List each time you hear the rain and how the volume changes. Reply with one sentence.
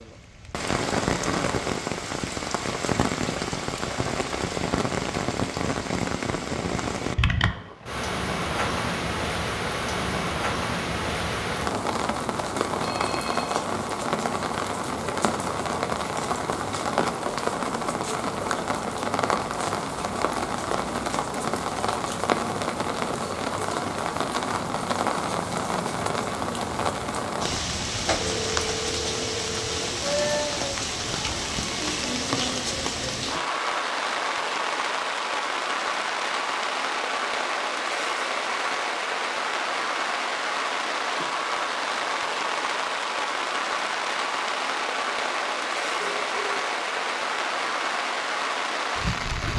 The rain can be heard from 0.0 to 49.5 s, at a steady volume.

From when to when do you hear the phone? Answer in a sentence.
The phone can be heard from 12.8 to 13.6 s, from 28.2 to 30.0 s and from 46.0 to 46.6 s.